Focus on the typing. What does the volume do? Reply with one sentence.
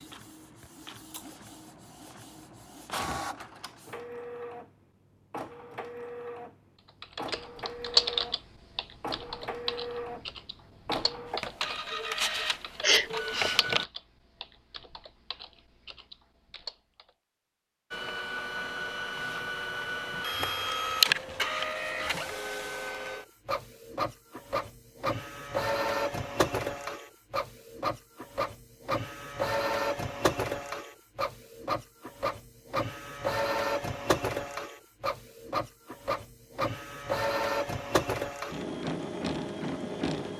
The volume of the typing goes down.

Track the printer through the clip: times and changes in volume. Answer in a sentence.
You can hear the printer from 0.0 to 13.8 s, getting louder; and from 17.9 to 40.3 s, at a steady volume.